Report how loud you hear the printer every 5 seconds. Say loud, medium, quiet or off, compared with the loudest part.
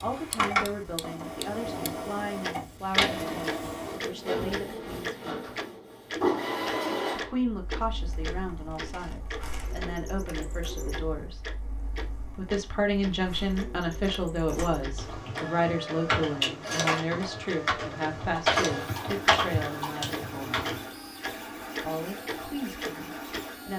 loud, loud, quiet, medium, medium.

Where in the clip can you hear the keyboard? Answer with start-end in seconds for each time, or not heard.
14.5-20.9.